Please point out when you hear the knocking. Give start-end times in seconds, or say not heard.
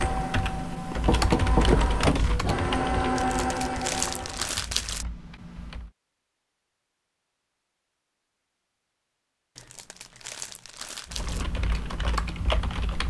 1.1-2.3.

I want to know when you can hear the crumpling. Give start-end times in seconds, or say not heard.
3.1-5.0, 9.6-11.4.